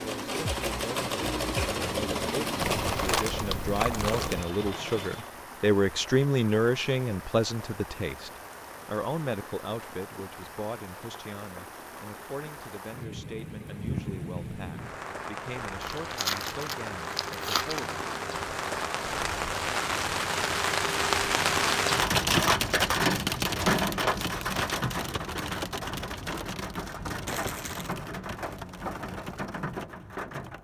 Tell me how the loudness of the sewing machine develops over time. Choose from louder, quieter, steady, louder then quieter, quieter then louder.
quieter.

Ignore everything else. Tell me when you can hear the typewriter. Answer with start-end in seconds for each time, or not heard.
not heard.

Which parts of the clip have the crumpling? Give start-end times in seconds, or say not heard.
2.6-4.5, 15.8-17.9, 27.2-27.9.